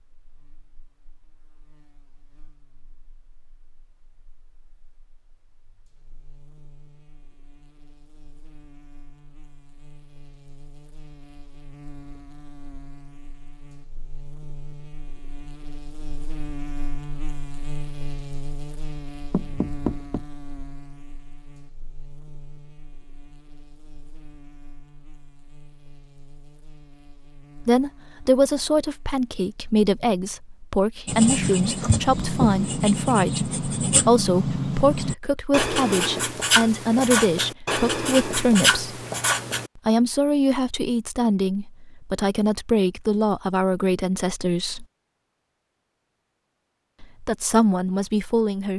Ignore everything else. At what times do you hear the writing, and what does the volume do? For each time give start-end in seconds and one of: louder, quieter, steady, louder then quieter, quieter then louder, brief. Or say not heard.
31.1-39.7 steady.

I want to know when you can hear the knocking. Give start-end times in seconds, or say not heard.
19.3-20.2.